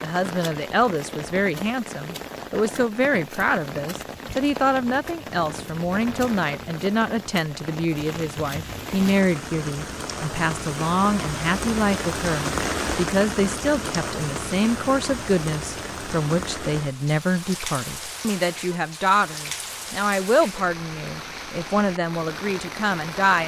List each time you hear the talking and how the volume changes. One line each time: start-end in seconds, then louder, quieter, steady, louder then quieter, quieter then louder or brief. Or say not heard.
0.0-23.4 steady.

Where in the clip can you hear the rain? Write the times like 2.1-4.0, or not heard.
0.0-23.4.